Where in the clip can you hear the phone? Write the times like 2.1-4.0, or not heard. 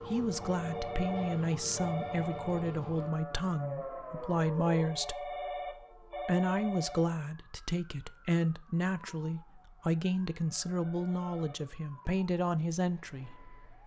0.2-2.9, 4.7-7.2, 10.4-12.0.